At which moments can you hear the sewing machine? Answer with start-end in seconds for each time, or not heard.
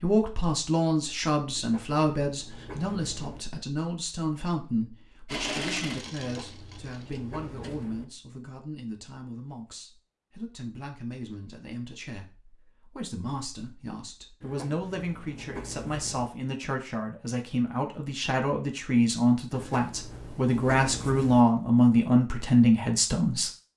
5.2-7.8.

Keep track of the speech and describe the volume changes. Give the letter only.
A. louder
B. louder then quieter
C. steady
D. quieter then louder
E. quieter
D.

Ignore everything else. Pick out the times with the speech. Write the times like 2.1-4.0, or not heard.
0.0-23.5.